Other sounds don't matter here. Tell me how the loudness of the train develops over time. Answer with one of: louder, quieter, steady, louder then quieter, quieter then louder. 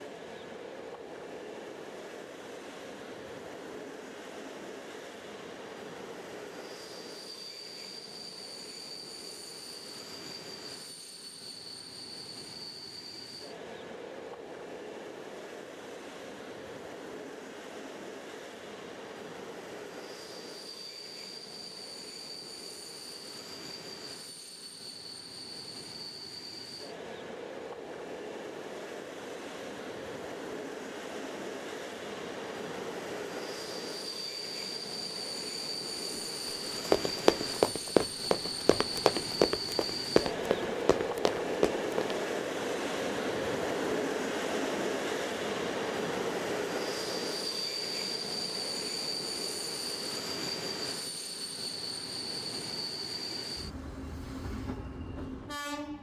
louder.